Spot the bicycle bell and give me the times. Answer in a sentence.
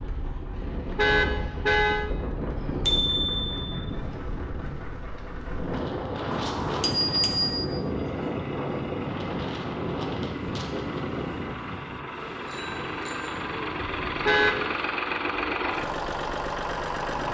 You can hear the bicycle bell from 2.9 to 3.6 s, from 6.3 to 7.7 s and from 12.4 to 13.3 s.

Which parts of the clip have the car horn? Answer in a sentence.
You can hear the car horn from 0.5 to 2.1 s and from 14.1 to 14.6 s.